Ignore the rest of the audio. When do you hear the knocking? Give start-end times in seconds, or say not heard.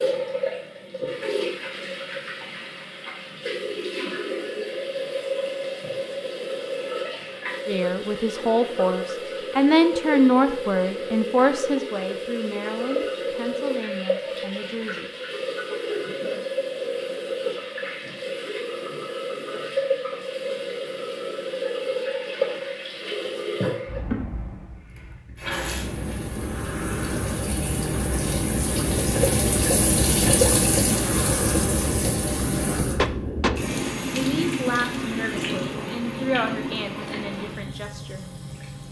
33.0-33.5.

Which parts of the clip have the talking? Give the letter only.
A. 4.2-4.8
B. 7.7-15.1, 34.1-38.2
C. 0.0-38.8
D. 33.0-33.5
B.